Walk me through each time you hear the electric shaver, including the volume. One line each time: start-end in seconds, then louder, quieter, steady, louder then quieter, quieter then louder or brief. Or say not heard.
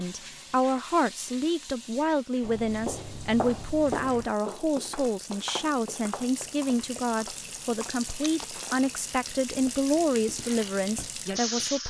not heard.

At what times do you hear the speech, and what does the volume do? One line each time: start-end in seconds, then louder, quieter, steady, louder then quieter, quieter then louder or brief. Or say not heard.
0.0-11.8 steady.